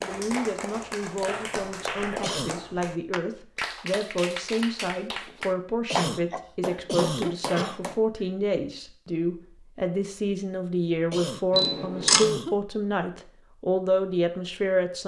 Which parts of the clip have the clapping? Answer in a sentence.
The clapping can be heard from 0.0 to 8.0 s.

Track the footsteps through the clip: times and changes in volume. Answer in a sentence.
The footsteps can't be heard in this clip.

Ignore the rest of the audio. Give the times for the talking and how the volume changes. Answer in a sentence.
The talking can be heard from 0.0 to 15.0 s, getting louder.